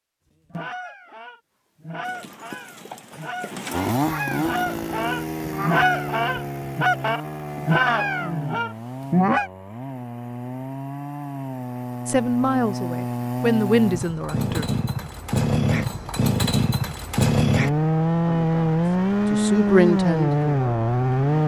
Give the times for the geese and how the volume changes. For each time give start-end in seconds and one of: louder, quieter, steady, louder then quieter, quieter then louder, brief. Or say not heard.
0.5-9.5 louder.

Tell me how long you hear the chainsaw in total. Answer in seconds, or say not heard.
18 s.